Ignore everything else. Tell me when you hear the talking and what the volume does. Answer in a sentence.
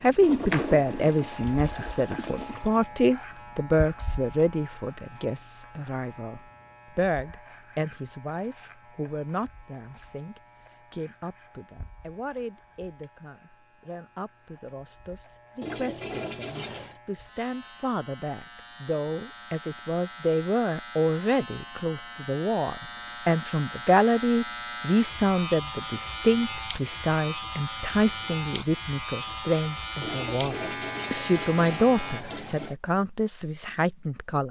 You can hear the talking from 0.0 to 34.4 s, getting quieter then louder.